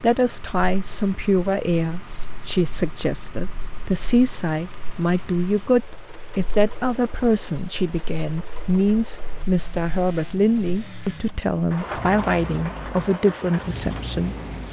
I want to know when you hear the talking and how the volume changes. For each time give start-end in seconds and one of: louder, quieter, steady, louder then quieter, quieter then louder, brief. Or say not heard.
0.0-14.6 steady.